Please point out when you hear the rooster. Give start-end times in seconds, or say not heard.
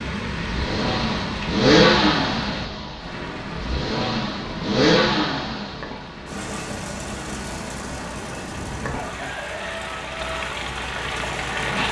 8.6-10.4.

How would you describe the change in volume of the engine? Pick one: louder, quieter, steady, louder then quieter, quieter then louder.
quieter.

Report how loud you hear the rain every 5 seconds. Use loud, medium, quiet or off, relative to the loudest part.
loud, medium, loud.